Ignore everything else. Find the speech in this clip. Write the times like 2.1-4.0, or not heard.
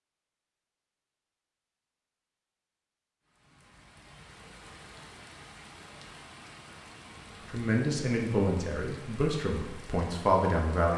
7.5-10.9.